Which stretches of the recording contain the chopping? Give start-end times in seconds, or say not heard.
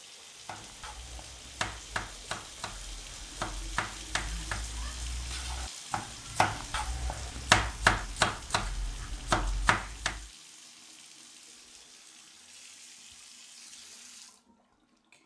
0.5-10.2.